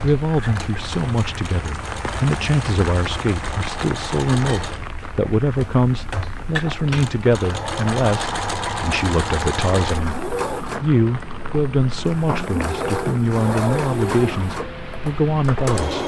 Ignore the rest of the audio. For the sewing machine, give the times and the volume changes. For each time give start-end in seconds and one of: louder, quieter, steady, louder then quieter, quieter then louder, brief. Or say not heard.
0.0-16.0 louder.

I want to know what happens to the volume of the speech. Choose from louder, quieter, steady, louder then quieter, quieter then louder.
steady.